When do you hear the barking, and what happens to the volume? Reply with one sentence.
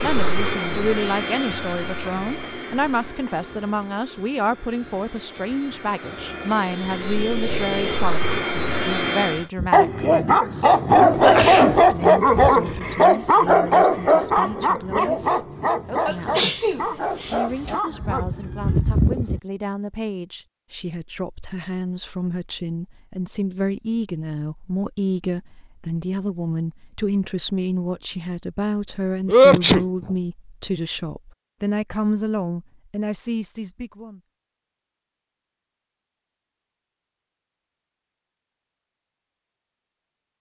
You can hear the barking from 9.6 to 19.4 s, getting quieter.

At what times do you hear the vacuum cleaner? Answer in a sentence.
The vacuum cleaner can be heard from 0.0 to 9.4 s.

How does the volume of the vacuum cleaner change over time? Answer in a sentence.
The loudness of the vacuum cleaner goes down, then up.